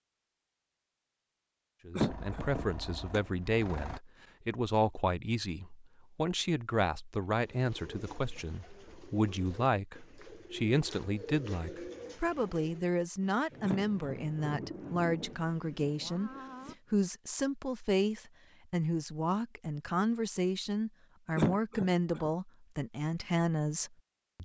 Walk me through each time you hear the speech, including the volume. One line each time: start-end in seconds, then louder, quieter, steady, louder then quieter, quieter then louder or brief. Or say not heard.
1.9-24.4 steady.